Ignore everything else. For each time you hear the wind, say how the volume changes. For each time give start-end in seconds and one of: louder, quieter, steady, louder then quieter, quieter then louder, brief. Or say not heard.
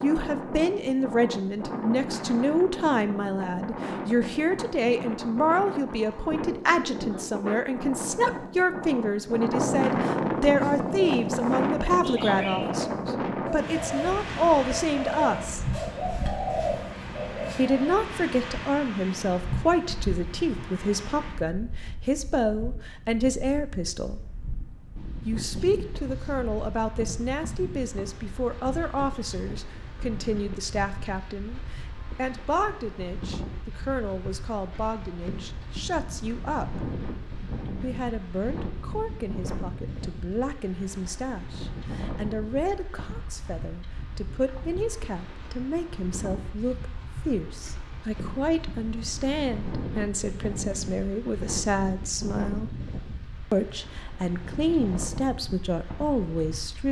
0.0-56.8 quieter.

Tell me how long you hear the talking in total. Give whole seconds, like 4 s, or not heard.
52 s.